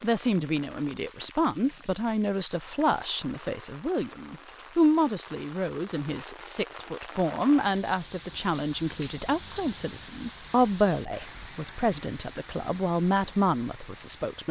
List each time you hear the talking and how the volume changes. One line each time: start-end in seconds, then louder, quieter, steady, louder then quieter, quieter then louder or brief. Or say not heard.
0.0-14.4 steady.